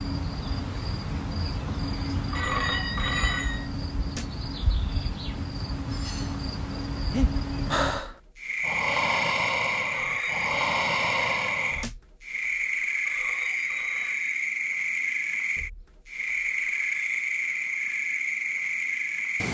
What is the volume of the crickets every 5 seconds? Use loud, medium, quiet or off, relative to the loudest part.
medium, loud, loud, loud.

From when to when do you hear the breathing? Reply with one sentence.
The breathing can be heard from 7.1 to 11.8 s.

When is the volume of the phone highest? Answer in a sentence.
The loudest moment of the phone is at 3 seconds.